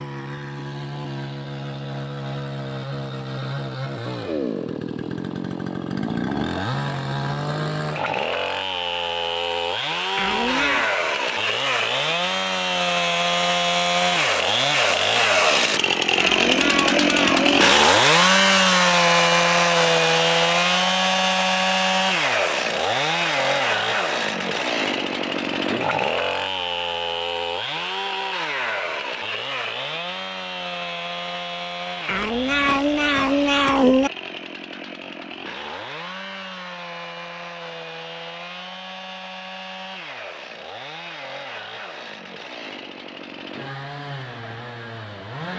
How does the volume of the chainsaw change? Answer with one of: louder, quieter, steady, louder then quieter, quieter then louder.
louder then quieter.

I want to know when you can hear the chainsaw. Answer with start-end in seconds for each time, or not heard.
0.0-45.5.